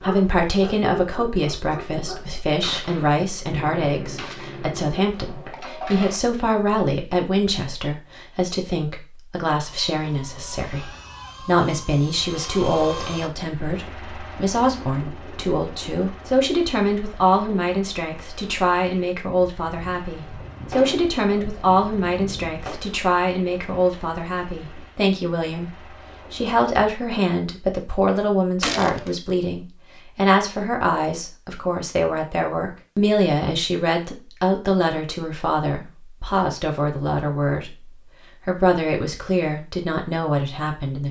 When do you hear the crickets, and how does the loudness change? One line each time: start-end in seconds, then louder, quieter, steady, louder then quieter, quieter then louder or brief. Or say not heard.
not heard.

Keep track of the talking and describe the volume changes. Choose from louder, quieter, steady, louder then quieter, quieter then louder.
steady.